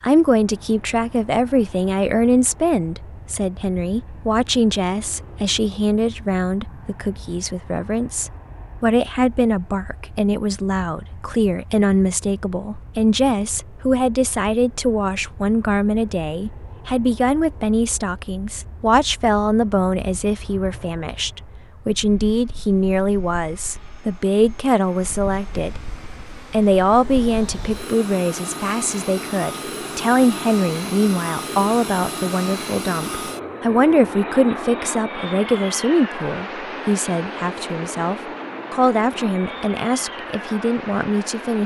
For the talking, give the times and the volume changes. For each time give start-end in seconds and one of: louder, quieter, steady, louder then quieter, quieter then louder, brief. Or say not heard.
0.0-25.8 steady
26.5-41.6 steady.